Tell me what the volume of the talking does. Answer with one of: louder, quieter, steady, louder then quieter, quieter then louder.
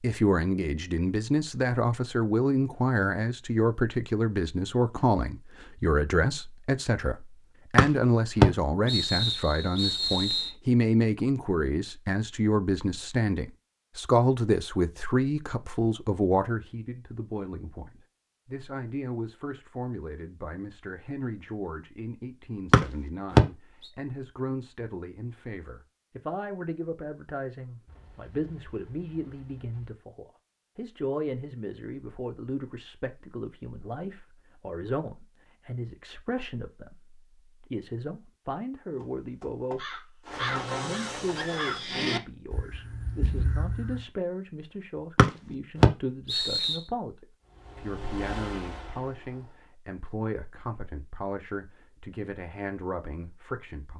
quieter.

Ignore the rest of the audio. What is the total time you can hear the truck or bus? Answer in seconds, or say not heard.
2 s.